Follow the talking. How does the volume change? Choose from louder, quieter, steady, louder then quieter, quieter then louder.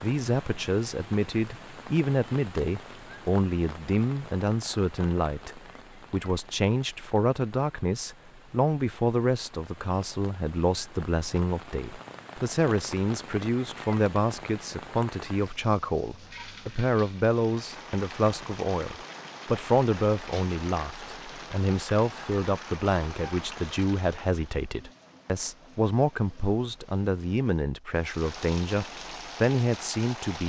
steady.